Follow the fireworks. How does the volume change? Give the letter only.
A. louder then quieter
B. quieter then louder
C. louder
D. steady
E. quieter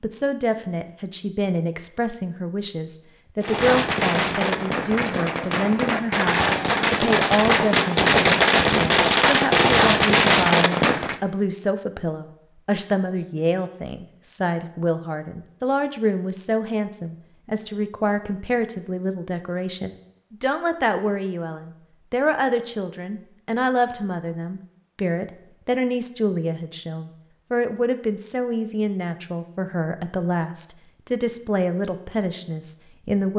C.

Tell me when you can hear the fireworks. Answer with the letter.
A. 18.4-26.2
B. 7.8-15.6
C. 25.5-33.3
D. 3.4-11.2
D.